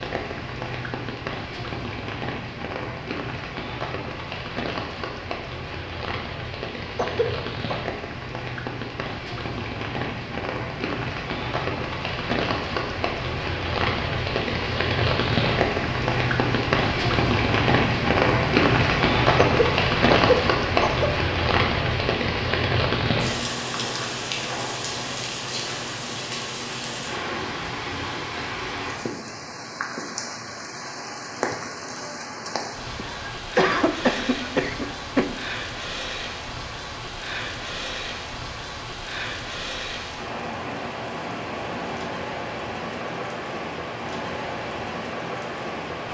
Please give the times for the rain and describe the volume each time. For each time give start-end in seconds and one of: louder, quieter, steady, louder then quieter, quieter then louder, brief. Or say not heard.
0.0-46.0 louder then quieter.